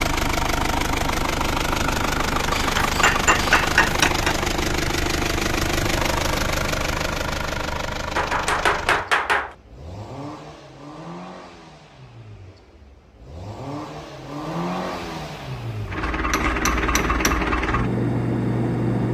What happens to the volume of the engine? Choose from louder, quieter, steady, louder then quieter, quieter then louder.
quieter then louder.